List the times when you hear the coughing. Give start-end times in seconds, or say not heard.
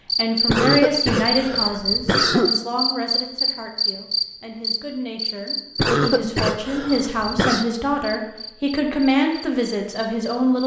0.5-2.5, 5.8-7.7.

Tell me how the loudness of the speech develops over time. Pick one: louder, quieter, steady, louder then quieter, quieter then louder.
quieter then louder.